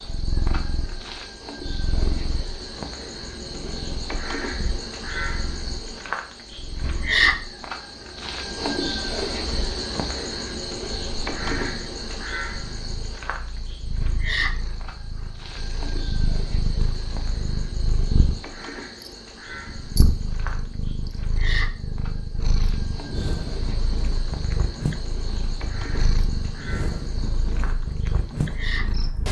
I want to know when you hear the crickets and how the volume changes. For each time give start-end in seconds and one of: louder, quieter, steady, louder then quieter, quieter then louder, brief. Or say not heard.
0.0-29.1 louder then quieter.